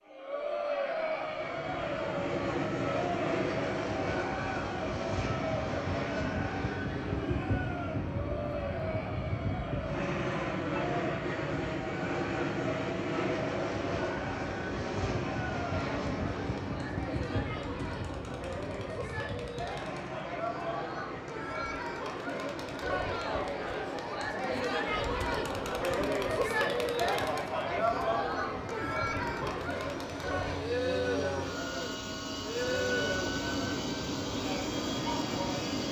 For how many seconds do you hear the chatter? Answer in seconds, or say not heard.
36 s.